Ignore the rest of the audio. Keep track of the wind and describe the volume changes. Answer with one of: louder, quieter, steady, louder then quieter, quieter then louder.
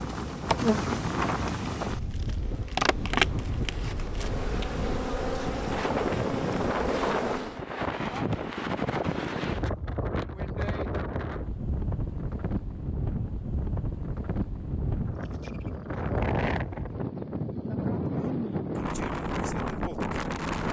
steady.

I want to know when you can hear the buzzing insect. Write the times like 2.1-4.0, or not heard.
0.0-7.6.